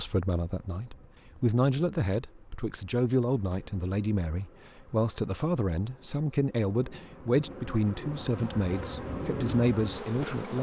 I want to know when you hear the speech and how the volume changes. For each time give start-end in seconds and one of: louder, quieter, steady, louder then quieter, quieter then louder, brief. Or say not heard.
0.0-10.5 steady.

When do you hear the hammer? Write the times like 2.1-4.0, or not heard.
not heard.